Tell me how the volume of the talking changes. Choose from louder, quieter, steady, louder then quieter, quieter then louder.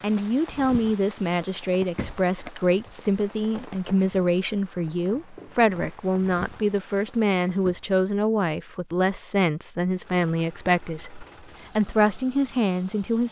steady.